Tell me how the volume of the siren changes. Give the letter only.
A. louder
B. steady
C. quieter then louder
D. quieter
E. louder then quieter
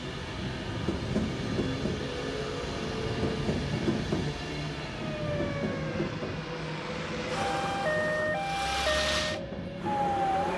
A.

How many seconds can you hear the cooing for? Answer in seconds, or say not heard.
not heard.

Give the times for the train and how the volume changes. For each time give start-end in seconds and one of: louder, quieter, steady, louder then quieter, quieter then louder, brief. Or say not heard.
0.0-10.5 quieter.